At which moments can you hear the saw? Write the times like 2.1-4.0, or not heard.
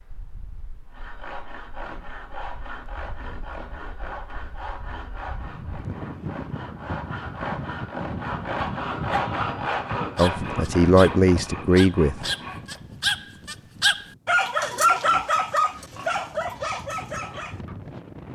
0.9-12.8.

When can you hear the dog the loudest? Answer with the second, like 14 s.
15 s.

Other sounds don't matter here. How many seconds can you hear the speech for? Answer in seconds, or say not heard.
2 s.